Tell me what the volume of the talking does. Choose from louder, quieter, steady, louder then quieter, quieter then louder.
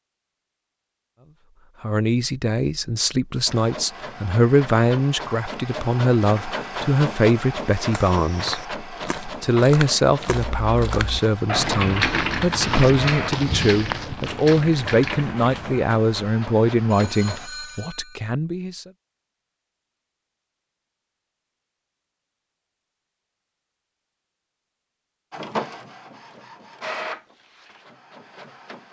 steady.